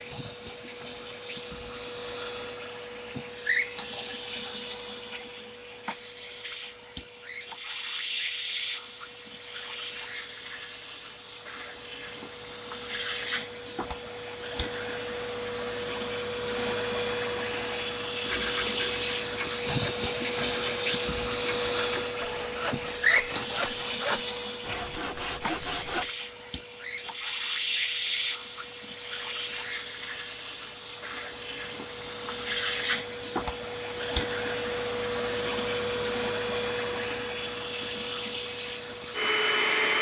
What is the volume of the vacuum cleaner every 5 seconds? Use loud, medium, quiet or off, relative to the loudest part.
medium, medium, medium, medium, loud, medium, medium, medium.